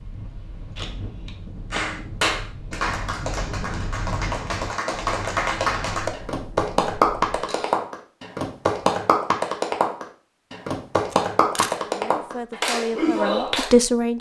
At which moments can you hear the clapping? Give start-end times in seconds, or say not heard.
1.7-13.7.